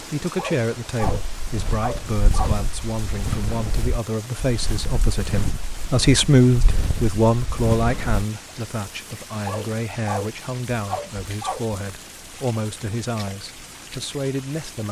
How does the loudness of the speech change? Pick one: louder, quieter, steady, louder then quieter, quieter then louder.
louder then quieter.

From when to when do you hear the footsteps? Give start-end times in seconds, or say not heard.
1.0-8.2.